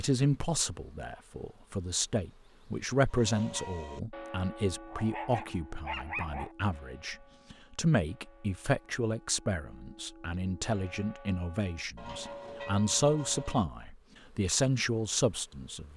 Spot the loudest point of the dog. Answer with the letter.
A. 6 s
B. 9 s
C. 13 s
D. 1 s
A.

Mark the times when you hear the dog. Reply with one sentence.
You can hear the dog from 4.8 to 6.5 s.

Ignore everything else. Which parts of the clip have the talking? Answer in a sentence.
The talking can be heard from 0.0 to 15.9 s.